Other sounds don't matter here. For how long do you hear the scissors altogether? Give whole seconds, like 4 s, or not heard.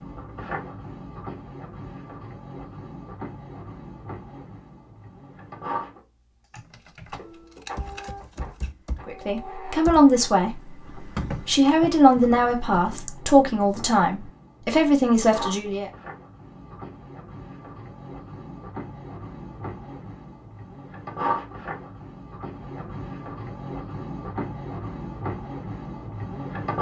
2 s.